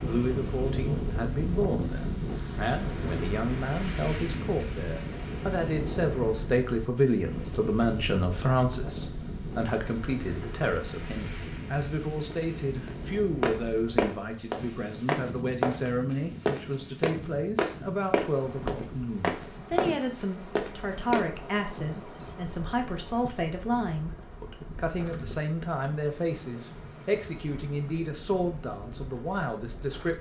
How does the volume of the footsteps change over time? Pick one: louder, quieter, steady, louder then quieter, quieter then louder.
steady.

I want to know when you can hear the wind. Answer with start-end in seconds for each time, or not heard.
0.0-30.0.